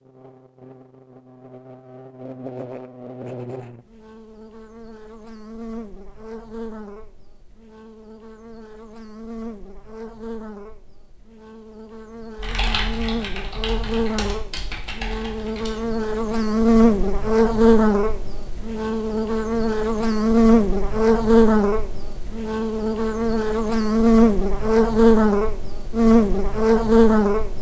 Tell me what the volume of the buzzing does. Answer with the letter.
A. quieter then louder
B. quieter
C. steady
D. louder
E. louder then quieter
D.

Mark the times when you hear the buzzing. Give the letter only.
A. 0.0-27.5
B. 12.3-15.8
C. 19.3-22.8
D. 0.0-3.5
A.